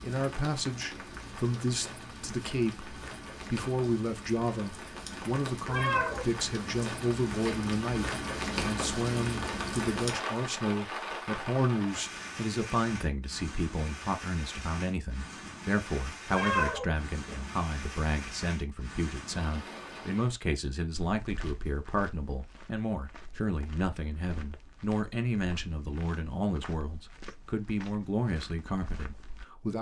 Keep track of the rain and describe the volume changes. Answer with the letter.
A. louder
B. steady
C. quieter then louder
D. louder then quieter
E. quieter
D.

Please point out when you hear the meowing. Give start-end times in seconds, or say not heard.
5.7-6.4, 16.3-17.4.